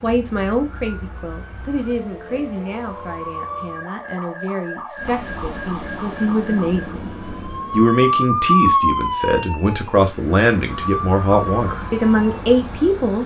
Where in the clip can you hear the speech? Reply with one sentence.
You can hear the speech from 0.0 to 7.0 s and from 7.7 to 13.2 s.